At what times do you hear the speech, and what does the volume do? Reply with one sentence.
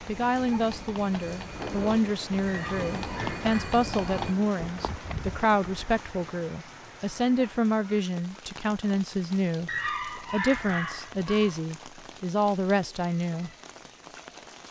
The speech can be heard from 0.1 to 13.5 s, at a steady volume.